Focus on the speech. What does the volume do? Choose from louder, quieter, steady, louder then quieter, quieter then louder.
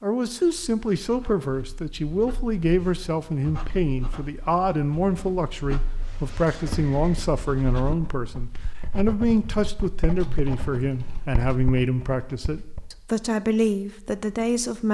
steady.